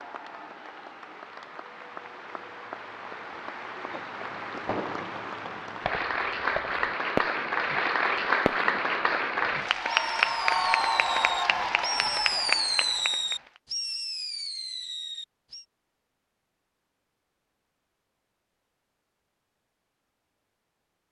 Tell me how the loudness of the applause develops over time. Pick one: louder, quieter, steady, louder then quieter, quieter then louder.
louder.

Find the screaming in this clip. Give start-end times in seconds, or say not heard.
10.4-11.8.